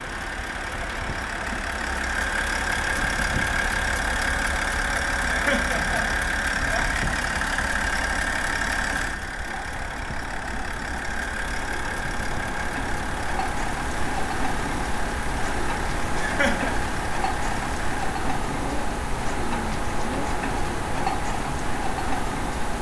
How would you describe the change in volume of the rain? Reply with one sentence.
The loudness of the rain goes up.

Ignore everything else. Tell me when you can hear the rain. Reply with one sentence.
You can hear the rain from 0.0 to 22.7 s.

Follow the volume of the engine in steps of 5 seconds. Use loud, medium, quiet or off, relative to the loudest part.
loud, loud, medium, medium, medium.